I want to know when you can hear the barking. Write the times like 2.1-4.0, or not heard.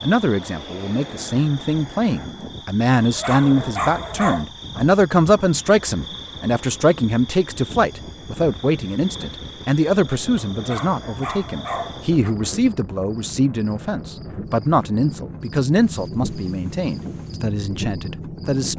3.0-4.5, 10.3-12.3.